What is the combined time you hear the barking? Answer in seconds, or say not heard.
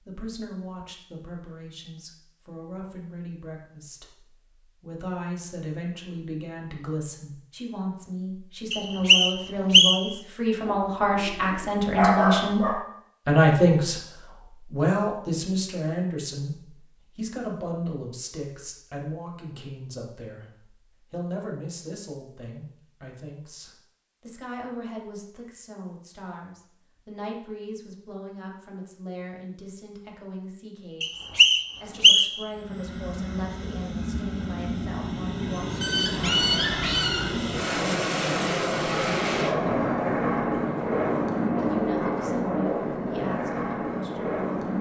4 s.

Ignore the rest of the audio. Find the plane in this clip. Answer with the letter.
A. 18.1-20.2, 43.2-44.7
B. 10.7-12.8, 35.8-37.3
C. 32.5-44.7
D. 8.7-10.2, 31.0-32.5
C.